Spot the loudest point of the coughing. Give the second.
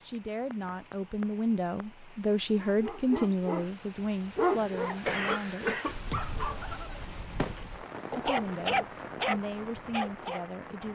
5 s.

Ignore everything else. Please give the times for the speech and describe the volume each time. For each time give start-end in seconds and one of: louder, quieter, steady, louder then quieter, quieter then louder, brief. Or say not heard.
0.0-5.8 louder then quieter
8.1-10.8 brief.